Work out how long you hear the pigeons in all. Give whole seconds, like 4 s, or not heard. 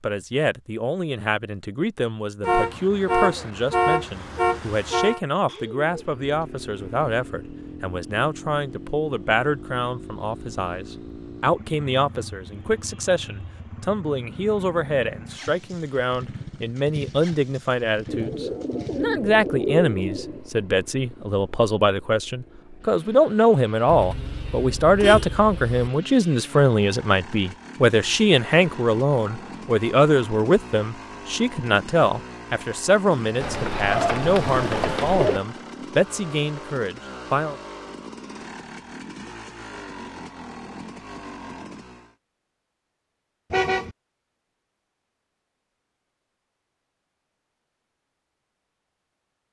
6 s.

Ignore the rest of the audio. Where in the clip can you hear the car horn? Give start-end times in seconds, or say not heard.
2.4-5.2, 23.9-25.9, 43.5-44.0.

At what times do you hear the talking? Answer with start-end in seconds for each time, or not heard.
0.0-37.6.